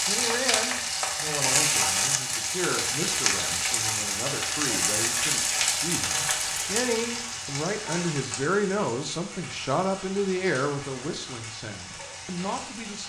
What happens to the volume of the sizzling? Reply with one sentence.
The volume of the sizzling goes down.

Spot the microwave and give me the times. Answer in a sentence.
The microwave can't be heard in this clip.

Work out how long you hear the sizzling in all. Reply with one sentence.
You can hear the sizzling for 13 seconds altogether.